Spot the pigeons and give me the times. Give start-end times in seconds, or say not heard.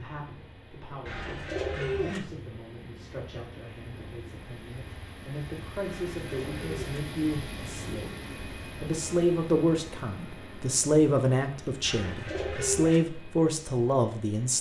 1.1-2.2, 5.8-7.0, 11.8-13.0.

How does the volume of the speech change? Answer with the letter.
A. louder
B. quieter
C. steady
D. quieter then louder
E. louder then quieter
A.